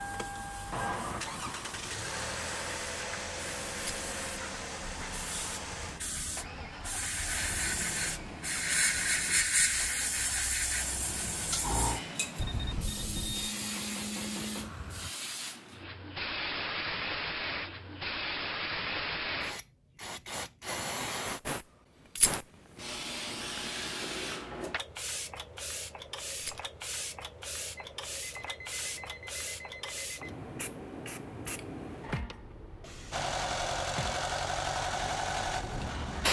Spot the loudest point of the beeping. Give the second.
13 s.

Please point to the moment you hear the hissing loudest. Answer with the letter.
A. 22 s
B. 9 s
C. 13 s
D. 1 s
B.